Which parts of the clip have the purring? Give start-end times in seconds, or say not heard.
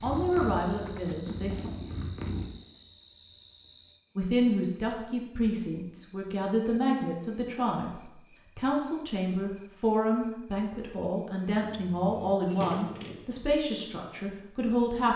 0.0-2.5.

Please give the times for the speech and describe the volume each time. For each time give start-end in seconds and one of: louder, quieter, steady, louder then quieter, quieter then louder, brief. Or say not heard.
0.0-1.7 brief
4.2-15.1 steady.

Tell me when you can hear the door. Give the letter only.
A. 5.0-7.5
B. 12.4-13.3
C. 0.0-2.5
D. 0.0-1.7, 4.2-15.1
B.